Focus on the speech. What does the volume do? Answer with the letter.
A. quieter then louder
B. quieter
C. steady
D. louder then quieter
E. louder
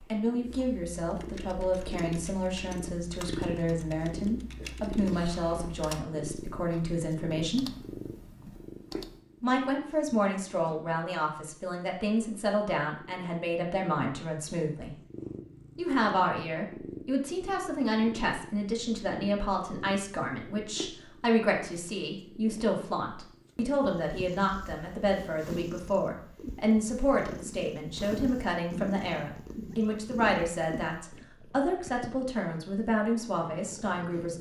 C.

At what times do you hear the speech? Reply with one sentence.
You can hear the speech from 0.0 to 7.7 s, from 9.4 to 14.9 s and from 15.8 to 34.3 s.